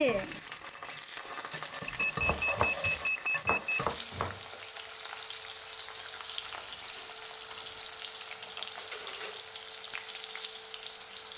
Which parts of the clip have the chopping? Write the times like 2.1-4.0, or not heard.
2.0-4.5.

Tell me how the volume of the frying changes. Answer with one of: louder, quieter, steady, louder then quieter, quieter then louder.
steady.